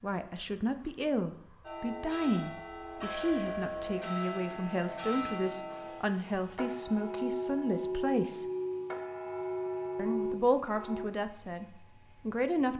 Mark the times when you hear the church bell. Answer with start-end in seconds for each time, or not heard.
1.6-11.1.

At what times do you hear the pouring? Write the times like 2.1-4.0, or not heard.
not heard.